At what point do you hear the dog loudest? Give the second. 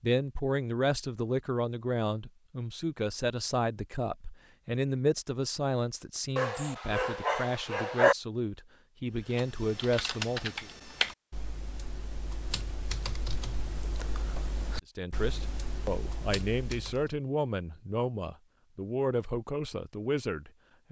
8 s.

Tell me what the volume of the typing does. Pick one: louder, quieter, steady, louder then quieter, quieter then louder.
quieter.